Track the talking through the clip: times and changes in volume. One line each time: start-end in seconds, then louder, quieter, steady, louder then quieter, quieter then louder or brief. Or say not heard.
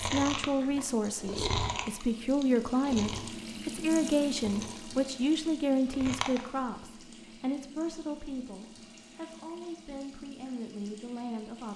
0.0-11.7 quieter.